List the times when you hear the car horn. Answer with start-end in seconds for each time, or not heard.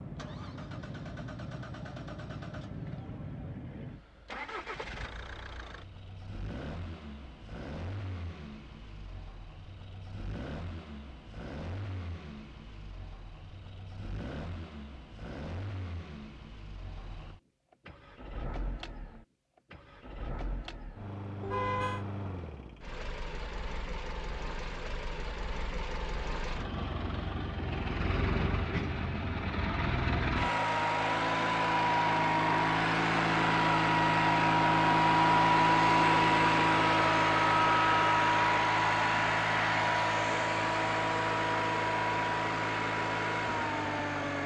21.4-22.1.